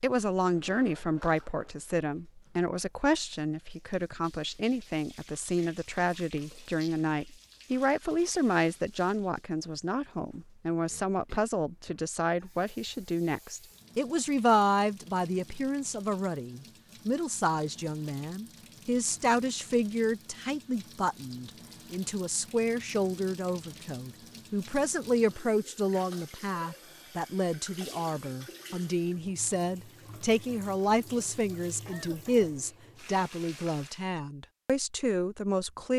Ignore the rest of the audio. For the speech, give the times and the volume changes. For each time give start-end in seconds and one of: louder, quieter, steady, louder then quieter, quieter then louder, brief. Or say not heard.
0.0-35.9 steady.